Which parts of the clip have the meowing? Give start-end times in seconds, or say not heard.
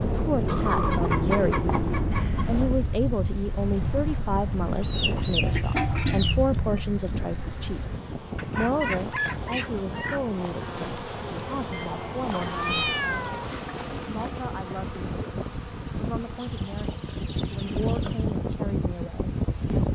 5.4-6.8, 11.7-13.6.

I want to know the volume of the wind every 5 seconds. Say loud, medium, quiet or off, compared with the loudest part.
loud, medium, medium, loud.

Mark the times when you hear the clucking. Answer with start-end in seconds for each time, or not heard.
0.5-2.5, 4.8-6.3, 8.3-10.2, 12.3-14.2, 16.4-18.2.